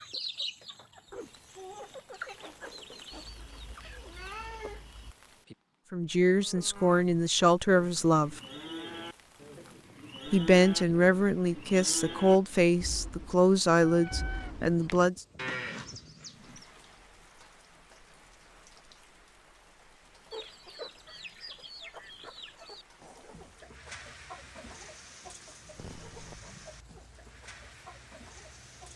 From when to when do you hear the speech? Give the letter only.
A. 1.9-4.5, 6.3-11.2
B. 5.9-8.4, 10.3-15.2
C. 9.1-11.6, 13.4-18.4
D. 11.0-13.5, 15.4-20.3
B.